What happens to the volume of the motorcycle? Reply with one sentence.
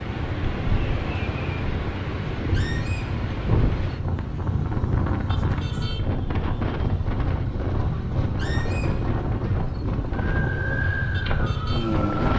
The loudness of the motorcycle stays about the same.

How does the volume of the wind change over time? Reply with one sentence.
The volume of the wind stays about the same.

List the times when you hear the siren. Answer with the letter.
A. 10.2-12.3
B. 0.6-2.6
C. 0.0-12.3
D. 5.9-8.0
A.